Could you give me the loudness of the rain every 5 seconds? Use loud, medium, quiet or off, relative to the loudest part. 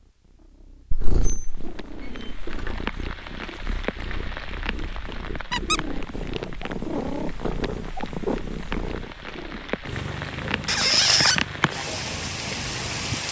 medium, medium, loud.